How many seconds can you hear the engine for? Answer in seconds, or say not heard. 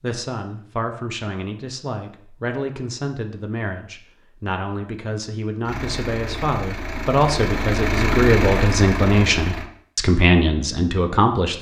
4 s.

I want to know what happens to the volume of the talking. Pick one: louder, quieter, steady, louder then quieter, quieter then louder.
louder.